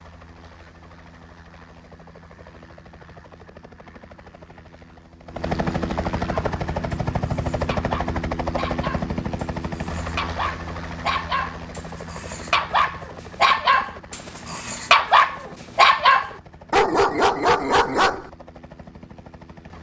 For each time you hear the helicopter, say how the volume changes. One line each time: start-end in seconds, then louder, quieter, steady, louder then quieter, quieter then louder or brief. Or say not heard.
0.0-19.7 louder then quieter.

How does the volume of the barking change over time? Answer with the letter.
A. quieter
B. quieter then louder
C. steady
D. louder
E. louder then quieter
D.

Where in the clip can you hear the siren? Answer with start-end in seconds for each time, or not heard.
not heard.